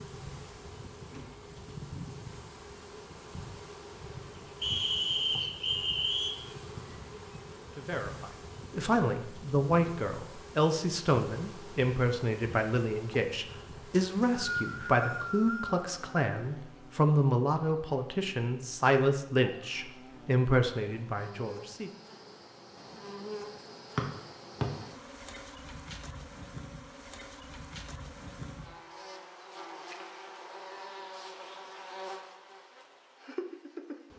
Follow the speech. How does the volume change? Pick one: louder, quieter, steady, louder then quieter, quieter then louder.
steady.